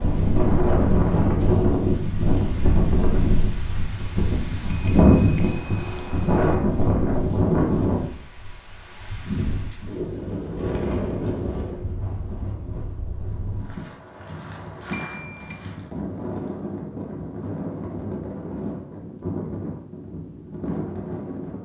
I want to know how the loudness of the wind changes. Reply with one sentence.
The loudness of the wind goes down.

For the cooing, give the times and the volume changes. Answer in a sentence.
You can't hear the cooing here.